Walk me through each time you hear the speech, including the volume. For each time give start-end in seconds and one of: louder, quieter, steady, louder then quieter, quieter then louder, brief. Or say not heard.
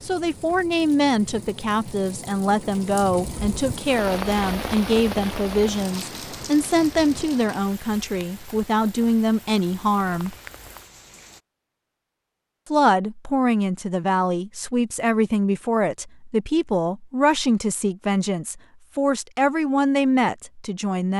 0.0-10.3 steady
12.7-21.1 steady.